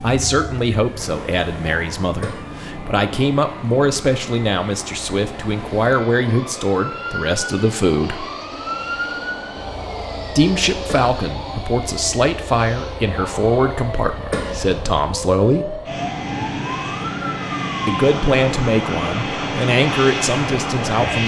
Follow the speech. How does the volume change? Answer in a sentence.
The volume of the speech stays about the same.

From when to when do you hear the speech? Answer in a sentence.
You can hear the speech from 0.0 to 8.2 s, from 10.2 to 15.8 s and from 17.9 to 21.2 s.